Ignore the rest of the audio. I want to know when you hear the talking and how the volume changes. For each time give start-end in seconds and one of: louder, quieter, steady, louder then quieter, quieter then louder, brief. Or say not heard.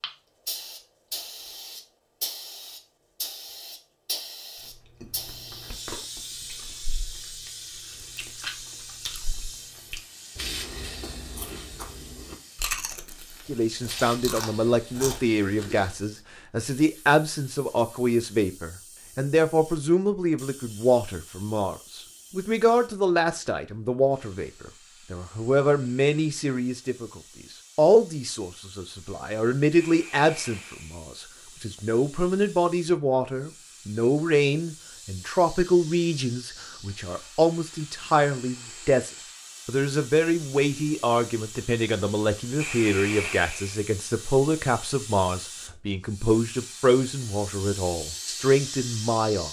13.4-49.4 steady.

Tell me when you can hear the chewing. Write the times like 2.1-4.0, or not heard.
4.5-16.0.